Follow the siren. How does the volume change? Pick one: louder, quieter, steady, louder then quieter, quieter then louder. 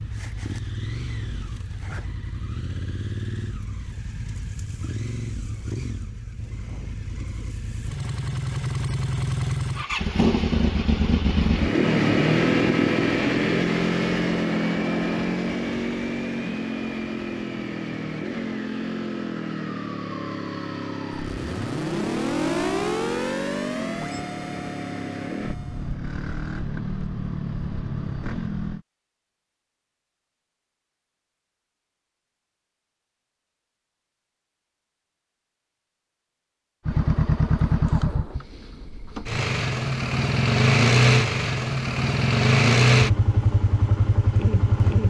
louder then quieter.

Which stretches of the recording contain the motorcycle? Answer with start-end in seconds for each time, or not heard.
0.0-28.9, 36.9-45.0.